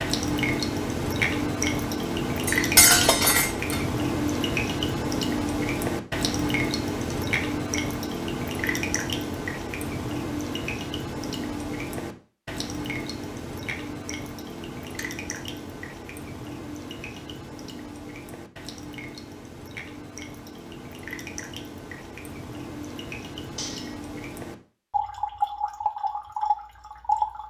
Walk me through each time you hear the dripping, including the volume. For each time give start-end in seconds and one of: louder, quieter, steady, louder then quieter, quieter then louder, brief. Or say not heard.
0.0-27.4 quieter then louder.